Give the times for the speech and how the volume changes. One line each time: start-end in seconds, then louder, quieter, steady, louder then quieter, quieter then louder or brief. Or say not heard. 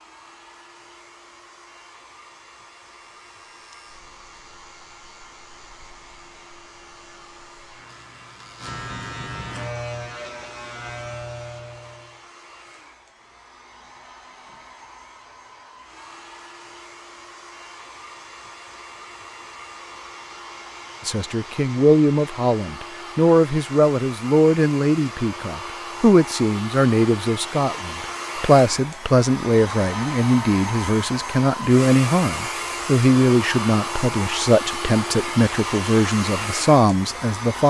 21.1-37.6 steady.